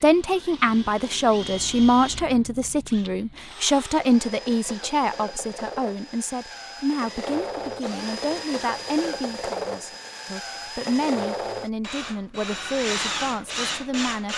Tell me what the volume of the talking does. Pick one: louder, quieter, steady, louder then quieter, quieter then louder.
quieter.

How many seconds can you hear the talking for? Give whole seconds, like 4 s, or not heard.
14 s.